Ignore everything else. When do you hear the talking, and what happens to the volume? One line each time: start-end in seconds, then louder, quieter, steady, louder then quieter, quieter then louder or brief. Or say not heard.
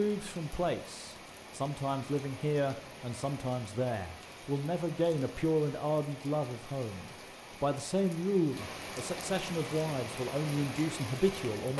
0.0-11.7 steady.